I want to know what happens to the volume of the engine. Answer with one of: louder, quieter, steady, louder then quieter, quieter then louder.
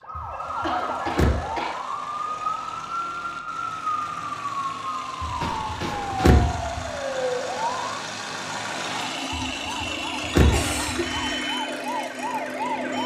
louder.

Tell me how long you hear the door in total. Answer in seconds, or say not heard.
5 s.